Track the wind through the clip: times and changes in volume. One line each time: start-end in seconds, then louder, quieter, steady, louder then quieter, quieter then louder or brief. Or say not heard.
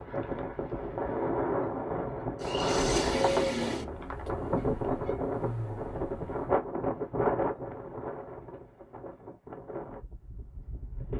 0.0-11.1 quieter.